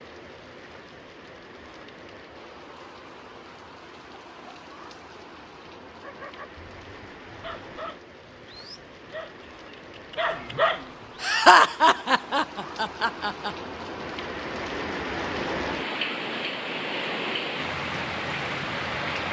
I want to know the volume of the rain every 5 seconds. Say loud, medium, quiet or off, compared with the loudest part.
quiet, quiet, medium, loud.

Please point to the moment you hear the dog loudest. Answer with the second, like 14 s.
11 s.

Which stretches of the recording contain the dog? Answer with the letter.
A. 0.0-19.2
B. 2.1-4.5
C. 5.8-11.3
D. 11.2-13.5
C.